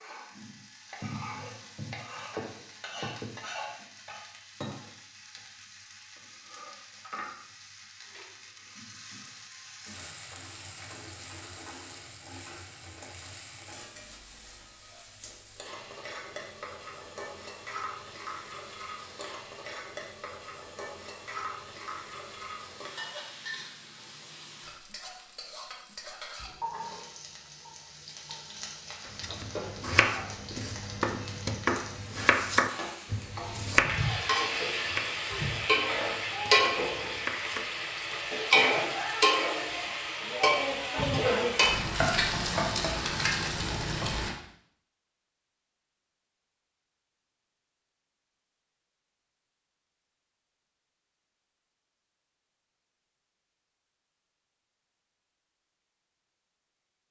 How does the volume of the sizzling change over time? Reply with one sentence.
The loudness of the sizzling goes up.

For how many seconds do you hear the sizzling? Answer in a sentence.
The sizzling can be heard for 44 seconds in total.